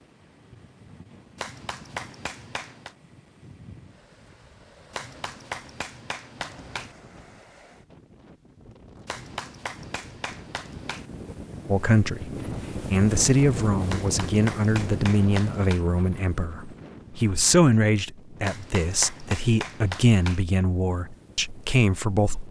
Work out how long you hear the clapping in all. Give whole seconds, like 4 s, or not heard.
10 s.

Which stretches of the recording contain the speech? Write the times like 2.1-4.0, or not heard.
11.7-22.4.